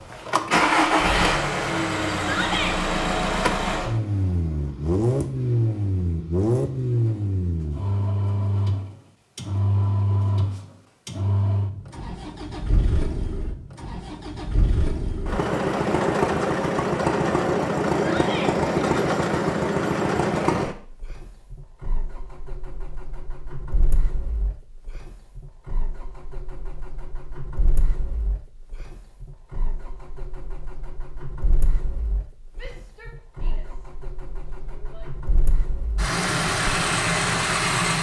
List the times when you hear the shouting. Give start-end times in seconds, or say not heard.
2.1-2.8, 17.9-18.6, 32.5-33.6, 34.5-35.1.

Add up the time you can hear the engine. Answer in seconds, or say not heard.
38 s.